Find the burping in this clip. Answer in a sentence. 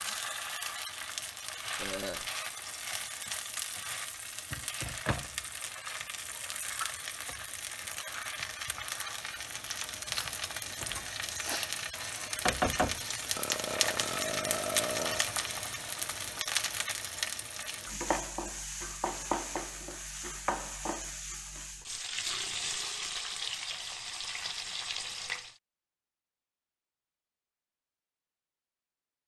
You can hear the burping from 1.8 to 2.3 s, from 13.3 to 15.3 s and from 22.1 to 23.4 s.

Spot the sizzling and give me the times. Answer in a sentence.
You can hear the sizzling from 0.0 to 25.6 s.